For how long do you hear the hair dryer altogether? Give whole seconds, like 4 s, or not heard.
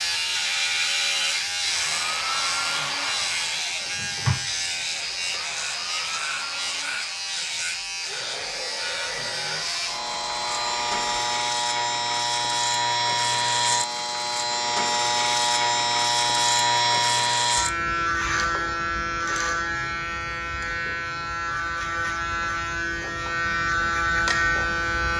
10 s.